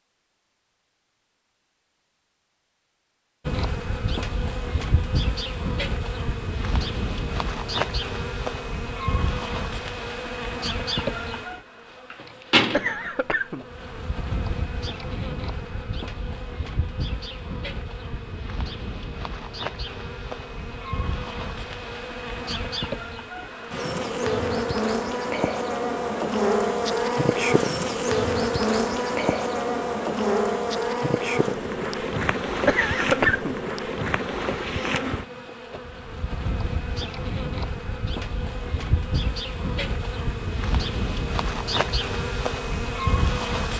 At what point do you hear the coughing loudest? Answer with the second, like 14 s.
33 s.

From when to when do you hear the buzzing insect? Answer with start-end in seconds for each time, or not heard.
3.5-43.7.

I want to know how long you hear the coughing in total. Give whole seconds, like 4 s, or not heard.
2 s.